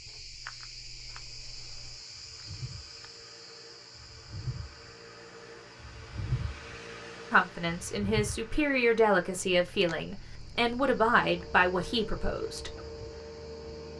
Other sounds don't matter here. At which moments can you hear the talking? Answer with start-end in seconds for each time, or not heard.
7.3-12.7.